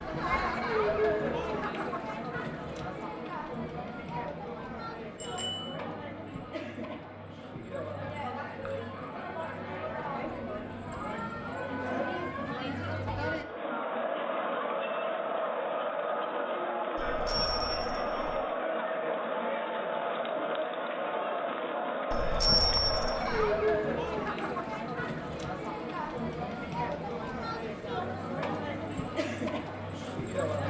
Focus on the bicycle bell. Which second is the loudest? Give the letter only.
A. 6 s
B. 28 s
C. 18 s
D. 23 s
D.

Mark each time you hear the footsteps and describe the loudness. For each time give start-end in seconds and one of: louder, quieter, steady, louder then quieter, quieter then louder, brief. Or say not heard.
not heard.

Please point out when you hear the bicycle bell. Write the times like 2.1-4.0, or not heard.
5.2-5.8, 16.9-18.4, 22.1-23.5.